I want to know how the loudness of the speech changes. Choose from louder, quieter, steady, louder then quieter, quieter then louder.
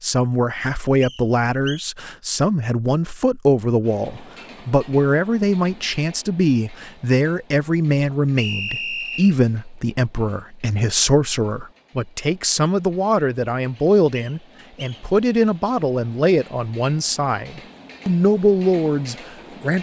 steady.